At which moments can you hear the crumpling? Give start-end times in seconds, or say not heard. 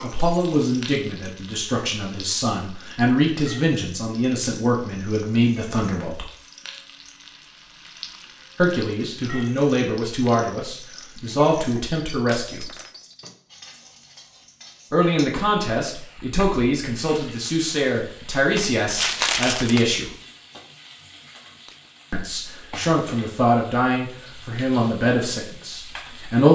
18.6-19.9.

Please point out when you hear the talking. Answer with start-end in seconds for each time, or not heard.
0.0-6.2, 8.6-12.7, 14.9-20.1, 22.1-26.5.